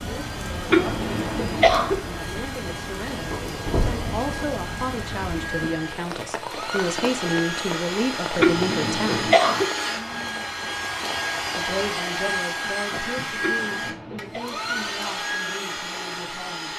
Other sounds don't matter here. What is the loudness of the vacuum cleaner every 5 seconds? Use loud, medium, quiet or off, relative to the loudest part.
medium, loud, loud, loud.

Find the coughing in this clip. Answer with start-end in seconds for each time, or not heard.
0.7-1.9, 8.3-9.7, 13.4-14.4.